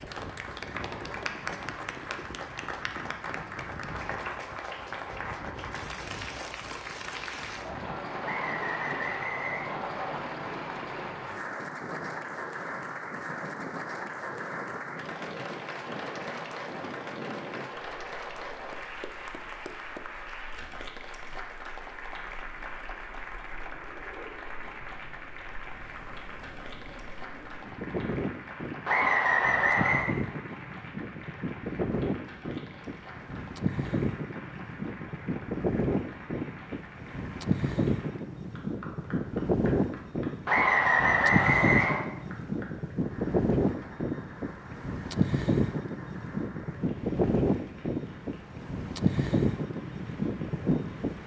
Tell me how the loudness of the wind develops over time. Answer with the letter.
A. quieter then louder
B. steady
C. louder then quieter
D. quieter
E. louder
E.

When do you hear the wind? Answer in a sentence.
The wind can be heard from 0.0 to 51.2 s.